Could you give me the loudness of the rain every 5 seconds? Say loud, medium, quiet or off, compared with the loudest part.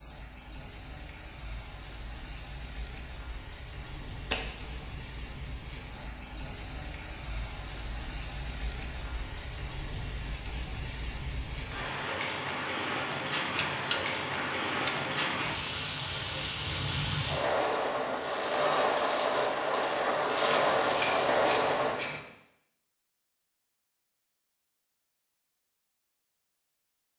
quiet, quiet, medium, loud, loud, off.